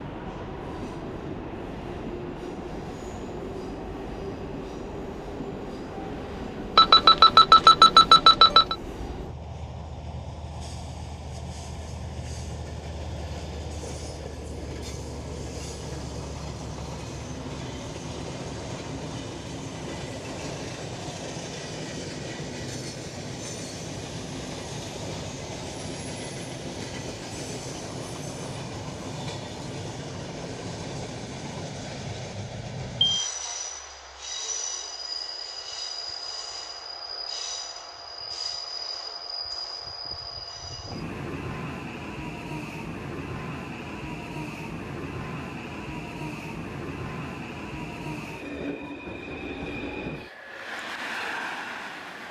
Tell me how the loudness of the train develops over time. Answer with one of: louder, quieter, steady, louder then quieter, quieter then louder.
steady.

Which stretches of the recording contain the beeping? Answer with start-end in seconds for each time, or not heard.
6.8-8.8, 32.5-33.3.